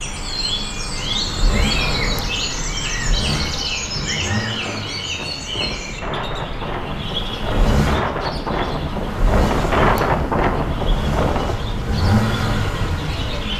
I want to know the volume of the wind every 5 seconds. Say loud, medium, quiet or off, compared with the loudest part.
medium, loud, loud.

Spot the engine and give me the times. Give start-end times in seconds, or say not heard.
0.0-13.5.